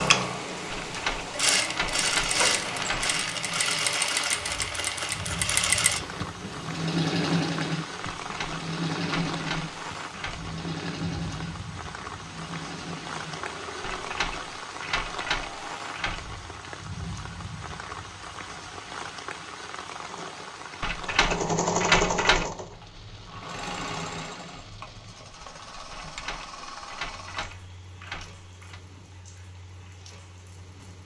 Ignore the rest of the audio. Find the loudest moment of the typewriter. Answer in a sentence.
The loudest moment of the typewriter is at 22 seconds.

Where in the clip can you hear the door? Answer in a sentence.
You can hear the door from 2.4 to 3.0 s.